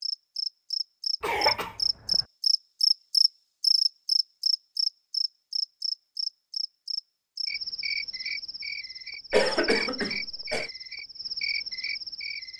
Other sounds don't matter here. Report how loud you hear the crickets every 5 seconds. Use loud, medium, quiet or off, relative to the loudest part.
loud, medium, medium.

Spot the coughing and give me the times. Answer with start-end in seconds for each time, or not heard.
1.2-2.2, 9.3-10.7.